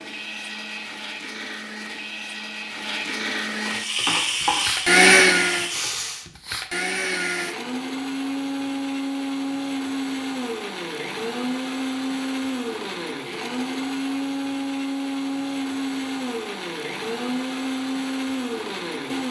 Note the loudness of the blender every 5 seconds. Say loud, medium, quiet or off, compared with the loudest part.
medium, loud, medium, medium.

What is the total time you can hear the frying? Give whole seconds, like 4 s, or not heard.
3 s.